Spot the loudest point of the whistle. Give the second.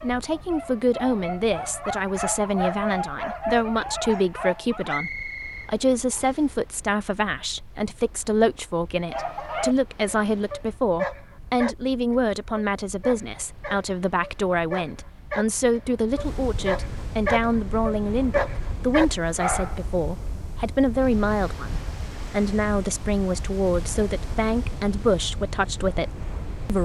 5 s.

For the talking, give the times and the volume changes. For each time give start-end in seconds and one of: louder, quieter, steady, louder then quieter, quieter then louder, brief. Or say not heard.
0.0-26.8 steady.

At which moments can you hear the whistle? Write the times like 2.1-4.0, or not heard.
4.8-6.5.